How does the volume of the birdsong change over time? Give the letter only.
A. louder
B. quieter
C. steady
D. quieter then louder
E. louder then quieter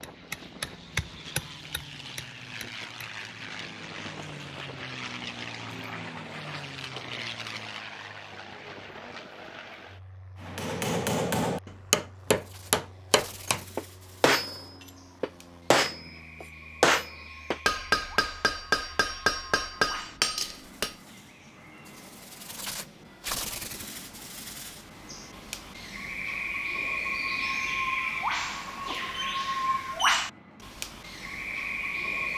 A.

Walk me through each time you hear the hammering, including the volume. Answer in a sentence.
The hammering can be heard briefly from 0.0 to 2.9 s; and from 10.4 to 20.9 s, at a steady volume.